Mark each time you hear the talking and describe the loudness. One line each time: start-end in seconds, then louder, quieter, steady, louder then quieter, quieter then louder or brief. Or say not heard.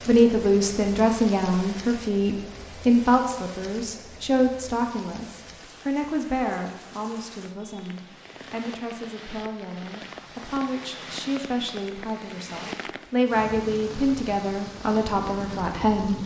0.1-16.2 quieter then louder.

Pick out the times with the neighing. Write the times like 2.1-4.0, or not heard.
not heard.